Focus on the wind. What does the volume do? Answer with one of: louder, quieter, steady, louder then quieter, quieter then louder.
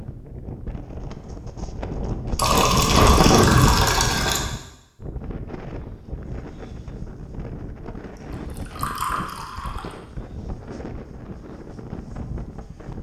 louder then quieter.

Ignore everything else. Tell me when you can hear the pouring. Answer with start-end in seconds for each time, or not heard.
2.4-4.4, 8.3-9.9.